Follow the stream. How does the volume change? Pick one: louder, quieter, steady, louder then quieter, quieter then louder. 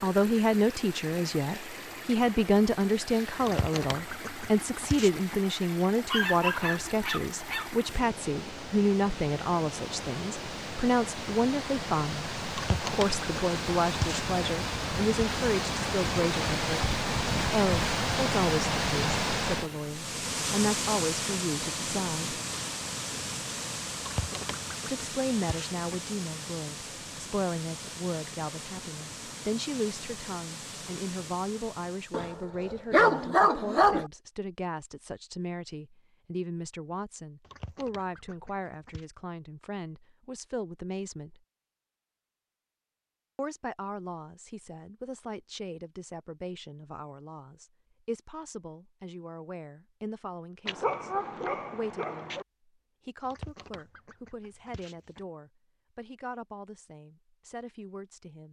louder then quieter.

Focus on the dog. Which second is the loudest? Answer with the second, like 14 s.
33 s.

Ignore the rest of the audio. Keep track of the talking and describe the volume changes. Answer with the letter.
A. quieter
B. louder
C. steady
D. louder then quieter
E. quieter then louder
A.